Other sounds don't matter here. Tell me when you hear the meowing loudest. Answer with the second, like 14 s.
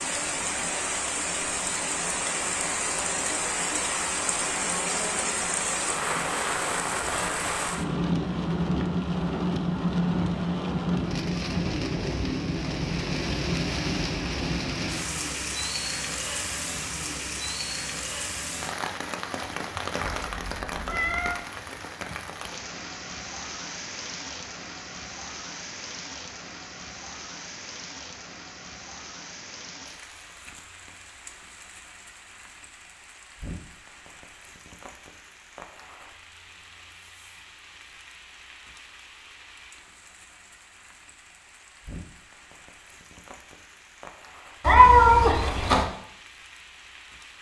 45 s.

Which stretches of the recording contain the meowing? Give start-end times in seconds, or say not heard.
20.2-21.4, 44.6-45.9.